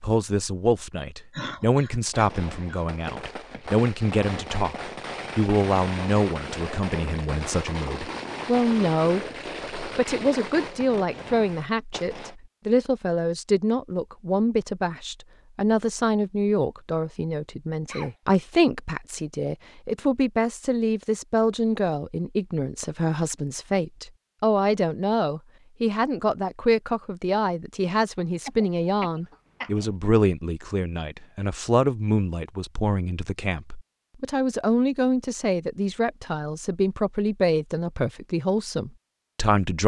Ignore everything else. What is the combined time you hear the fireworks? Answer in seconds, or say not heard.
10 s.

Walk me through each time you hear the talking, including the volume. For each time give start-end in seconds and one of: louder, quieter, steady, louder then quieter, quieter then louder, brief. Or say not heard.
0.0-39.8 steady.